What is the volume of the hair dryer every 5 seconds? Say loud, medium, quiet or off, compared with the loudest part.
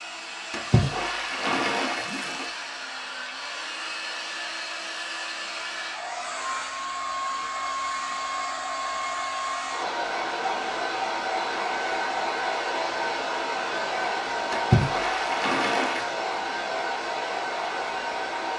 medium, loud, loud, loud.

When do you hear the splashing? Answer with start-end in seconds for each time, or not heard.
0.5-2.5, 14.5-16.1.